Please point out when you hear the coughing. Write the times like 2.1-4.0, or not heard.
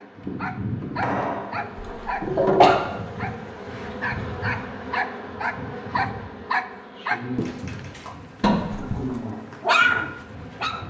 1.8-2.8, 8.4-9.0.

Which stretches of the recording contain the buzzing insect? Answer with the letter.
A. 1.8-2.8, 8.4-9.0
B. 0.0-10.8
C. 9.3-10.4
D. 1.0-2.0
B.